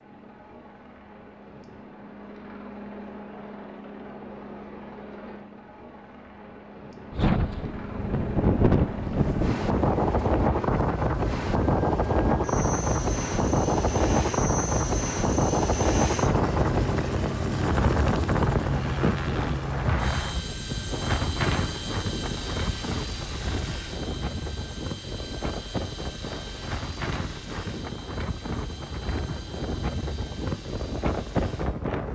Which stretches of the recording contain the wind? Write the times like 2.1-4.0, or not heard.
7.1-32.1.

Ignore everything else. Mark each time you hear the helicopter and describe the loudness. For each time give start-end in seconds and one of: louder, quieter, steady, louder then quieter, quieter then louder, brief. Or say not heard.
0.0-32.0 louder then quieter.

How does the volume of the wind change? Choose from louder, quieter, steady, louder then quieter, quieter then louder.
quieter.